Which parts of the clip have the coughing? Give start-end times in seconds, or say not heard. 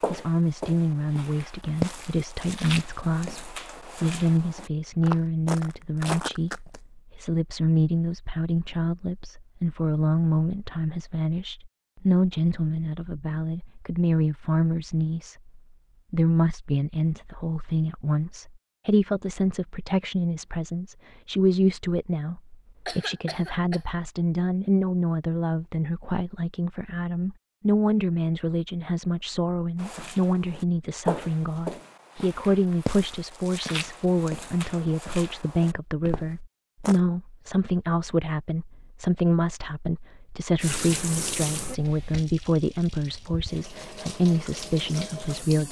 22.9-23.9.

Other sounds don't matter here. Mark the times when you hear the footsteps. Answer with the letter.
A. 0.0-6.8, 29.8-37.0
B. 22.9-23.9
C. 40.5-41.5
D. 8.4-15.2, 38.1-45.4
A.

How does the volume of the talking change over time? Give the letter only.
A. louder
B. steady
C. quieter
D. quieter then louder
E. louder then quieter
B.